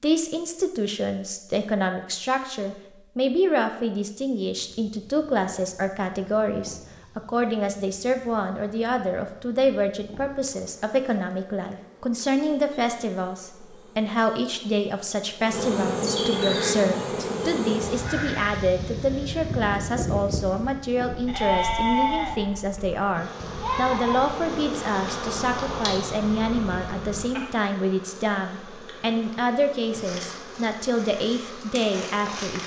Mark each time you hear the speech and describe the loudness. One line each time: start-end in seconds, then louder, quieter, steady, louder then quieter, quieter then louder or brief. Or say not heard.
0.0-32.6 steady.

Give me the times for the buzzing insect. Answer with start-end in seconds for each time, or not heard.
4.6-32.6.